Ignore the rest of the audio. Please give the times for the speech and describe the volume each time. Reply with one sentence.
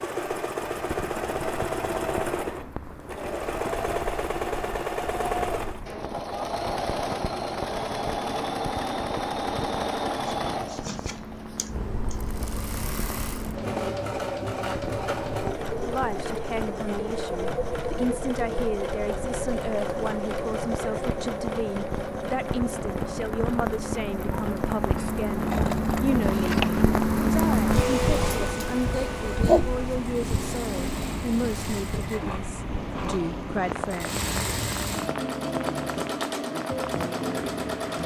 You can hear the speech from 15.7 to 34.1 s, at a steady volume.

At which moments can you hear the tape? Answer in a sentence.
You can hear the tape from 32.5 to 34.0 s.